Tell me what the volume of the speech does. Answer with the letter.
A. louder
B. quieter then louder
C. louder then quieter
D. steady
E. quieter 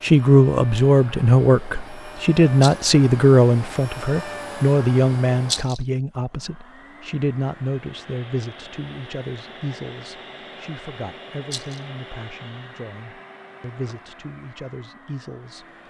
E.